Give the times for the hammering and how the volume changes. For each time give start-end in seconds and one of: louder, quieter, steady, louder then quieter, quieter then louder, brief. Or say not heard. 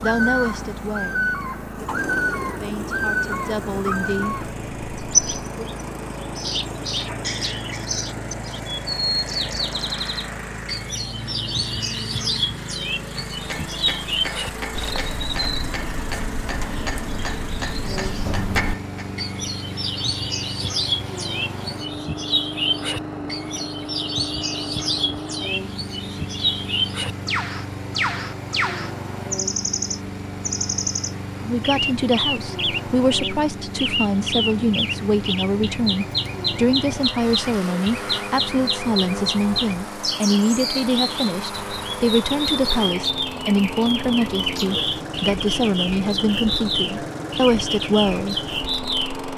13.2-19.0 louder.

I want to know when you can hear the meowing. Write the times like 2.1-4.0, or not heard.
not heard.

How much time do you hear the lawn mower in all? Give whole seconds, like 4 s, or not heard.
49 s.